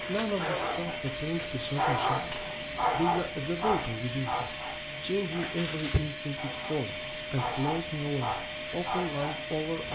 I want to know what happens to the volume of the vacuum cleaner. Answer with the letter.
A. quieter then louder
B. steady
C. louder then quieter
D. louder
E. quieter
B.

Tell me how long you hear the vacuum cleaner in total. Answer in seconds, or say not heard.
10 s.